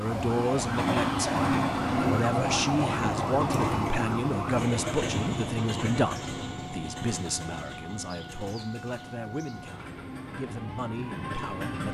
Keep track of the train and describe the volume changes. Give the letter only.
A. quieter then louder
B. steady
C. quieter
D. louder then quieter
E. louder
C.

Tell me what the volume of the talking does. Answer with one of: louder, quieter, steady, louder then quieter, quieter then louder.
quieter.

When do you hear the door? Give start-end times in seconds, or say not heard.
not heard.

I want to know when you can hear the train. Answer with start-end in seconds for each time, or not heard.
0.0-11.8.